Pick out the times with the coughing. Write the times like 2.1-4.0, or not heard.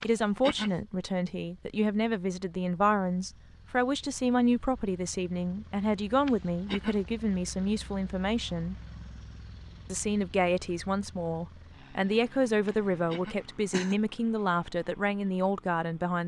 0.0-0.8, 6.2-7.0, 12.7-13.9.